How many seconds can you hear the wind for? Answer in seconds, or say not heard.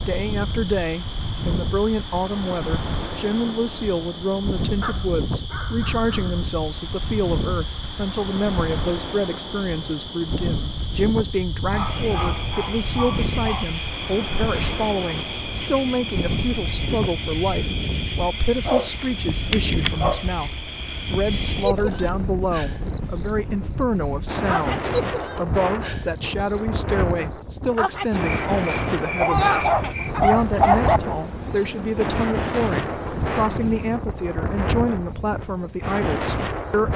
37 s.